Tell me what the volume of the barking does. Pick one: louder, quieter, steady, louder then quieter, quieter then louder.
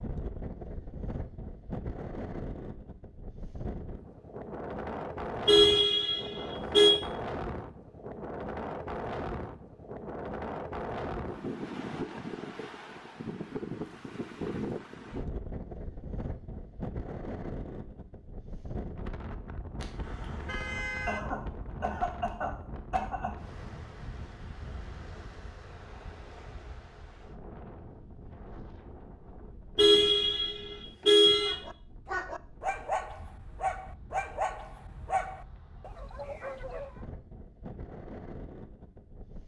quieter.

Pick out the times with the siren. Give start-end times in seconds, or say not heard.
not heard.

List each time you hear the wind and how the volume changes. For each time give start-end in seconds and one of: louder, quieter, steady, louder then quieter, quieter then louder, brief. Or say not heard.
0.0-39.4 quieter.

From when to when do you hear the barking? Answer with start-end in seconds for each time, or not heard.
31.4-37.0.